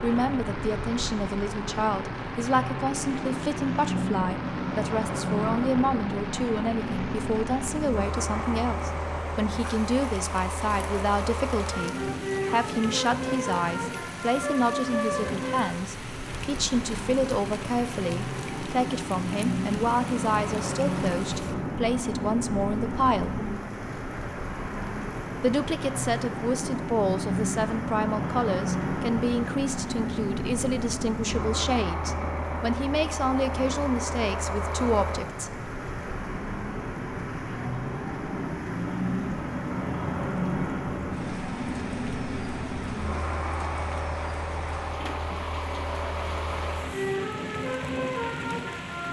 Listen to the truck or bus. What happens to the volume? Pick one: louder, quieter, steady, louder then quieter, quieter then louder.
steady.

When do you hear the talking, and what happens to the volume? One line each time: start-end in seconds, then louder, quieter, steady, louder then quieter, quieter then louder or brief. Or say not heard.
0.0-23.4 steady
25.4-35.5 steady.